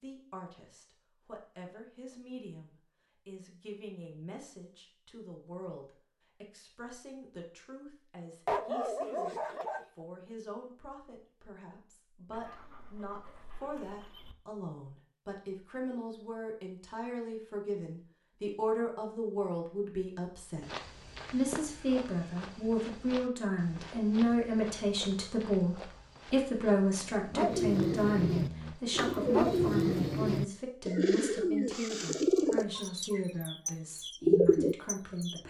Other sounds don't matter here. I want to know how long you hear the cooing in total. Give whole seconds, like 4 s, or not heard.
8 s.